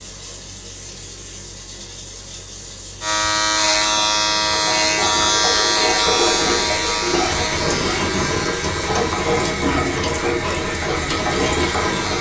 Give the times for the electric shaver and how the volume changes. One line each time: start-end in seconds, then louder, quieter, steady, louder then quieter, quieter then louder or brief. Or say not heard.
3.0-12.1 quieter.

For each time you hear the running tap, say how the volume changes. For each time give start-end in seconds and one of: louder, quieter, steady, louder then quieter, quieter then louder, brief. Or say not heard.
0.0-12.1 louder.